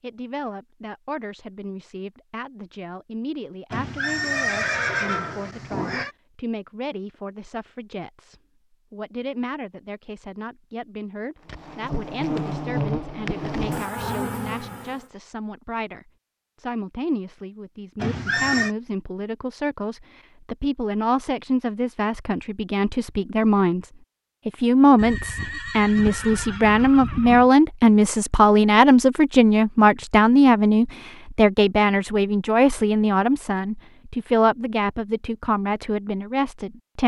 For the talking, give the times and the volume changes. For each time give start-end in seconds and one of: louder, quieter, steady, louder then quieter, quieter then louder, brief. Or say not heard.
0.0-37.0 louder.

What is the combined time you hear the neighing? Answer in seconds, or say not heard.
6 s.